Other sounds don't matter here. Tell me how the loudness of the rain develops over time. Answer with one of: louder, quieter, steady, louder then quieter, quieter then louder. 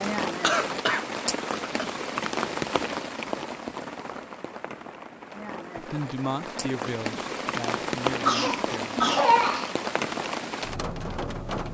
quieter then louder.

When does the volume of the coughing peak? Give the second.
9 s.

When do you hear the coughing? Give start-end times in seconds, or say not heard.
0.4-1.9, 8.1-9.7.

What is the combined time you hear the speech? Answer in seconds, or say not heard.
3 s.